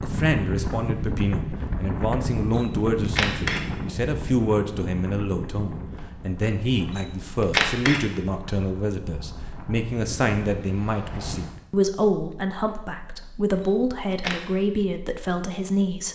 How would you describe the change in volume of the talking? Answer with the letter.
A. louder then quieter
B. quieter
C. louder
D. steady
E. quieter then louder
D.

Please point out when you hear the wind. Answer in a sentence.
The wind can be heard from 0.0 to 11.6 s.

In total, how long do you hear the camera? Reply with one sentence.
You can hear the camera for 3 seconds altogether.